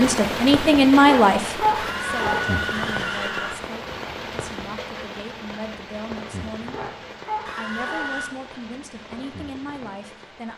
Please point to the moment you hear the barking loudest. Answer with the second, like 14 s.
2 s.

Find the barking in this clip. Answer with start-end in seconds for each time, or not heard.
1.1-2.5, 6.7-8.2.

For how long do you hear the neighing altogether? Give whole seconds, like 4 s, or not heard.
3 s.